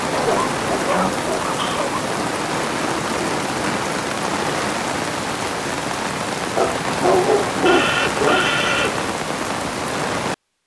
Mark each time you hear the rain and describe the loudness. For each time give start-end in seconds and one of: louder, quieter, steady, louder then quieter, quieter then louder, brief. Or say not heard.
0.0-10.3 steady.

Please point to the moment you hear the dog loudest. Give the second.
7 s.